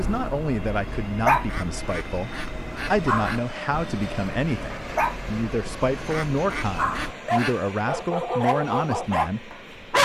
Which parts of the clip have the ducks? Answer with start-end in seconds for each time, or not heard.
1.4-3.4, 6.1-7.6.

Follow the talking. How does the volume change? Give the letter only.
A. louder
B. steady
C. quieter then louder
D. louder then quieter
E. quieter
B.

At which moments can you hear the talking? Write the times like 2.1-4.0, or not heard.
0.0-10.0.